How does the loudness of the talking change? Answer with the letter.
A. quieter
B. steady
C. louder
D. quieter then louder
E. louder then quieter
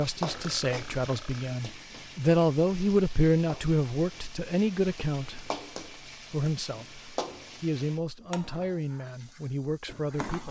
E.